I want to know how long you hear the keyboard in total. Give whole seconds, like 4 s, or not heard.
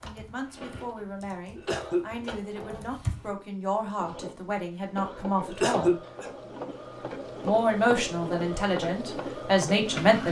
3 s.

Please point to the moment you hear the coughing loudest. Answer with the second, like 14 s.
6 s.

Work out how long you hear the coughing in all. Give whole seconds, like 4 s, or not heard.
2 s.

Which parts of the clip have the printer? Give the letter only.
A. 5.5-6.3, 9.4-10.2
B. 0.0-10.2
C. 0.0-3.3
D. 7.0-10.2
B.